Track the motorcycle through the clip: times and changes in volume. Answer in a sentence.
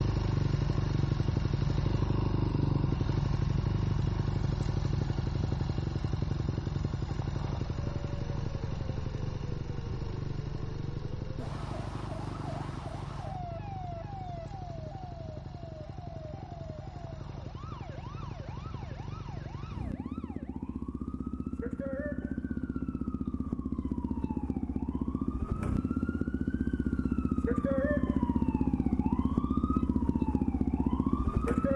The motorcycle can be heard from 0.0 to 31.7 s, getting quieter then louder.